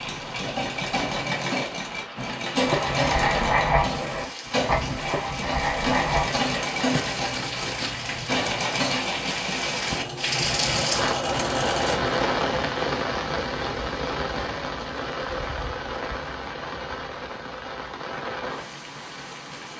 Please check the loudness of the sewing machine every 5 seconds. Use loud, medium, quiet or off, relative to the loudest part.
loud, loud, loud, off.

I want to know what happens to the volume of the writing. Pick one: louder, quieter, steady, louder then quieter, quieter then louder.
quieter.